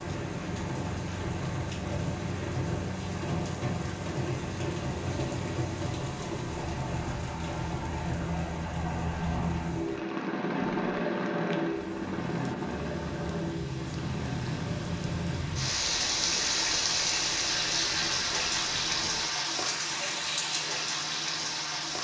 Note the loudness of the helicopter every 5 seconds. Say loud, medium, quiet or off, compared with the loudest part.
medium, loud, loud, quiet, quiet.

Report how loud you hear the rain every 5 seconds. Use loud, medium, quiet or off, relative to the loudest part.
medium, medium, medium, loud, loud.